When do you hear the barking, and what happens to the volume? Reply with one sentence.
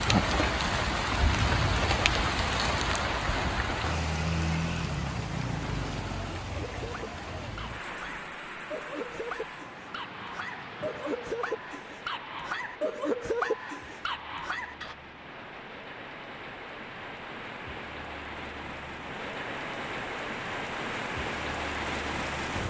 You can hear the barking from 6.5 to 14.9 s, getting louder.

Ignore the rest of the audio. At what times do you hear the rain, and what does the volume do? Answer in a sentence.
You can hear the rain from 0.0 to 22.6 s, getting quieter then louder.